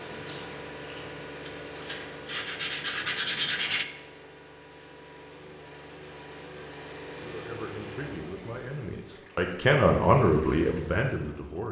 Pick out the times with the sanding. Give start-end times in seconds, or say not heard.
0.0-3.9.